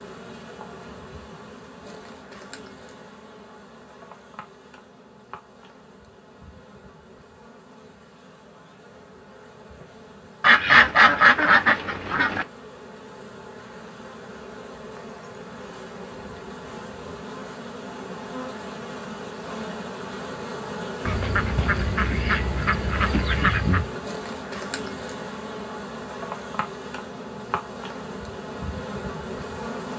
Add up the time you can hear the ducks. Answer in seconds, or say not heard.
5 s.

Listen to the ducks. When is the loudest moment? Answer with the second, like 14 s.
11 s.